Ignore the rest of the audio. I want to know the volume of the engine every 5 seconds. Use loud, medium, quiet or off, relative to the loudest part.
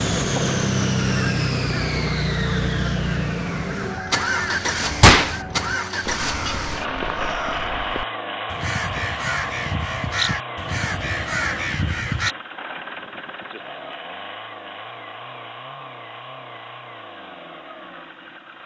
loud, medium, medium, quiet.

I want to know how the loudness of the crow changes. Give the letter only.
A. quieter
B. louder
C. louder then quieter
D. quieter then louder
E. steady
B.